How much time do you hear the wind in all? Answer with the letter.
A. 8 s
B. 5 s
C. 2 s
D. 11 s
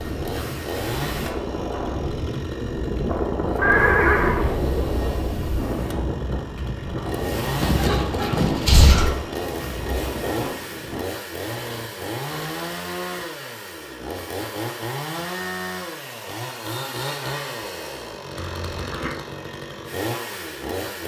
D.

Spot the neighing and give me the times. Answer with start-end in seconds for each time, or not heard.
3.6-4.5, 7.6-9.2, 18.4-19.1.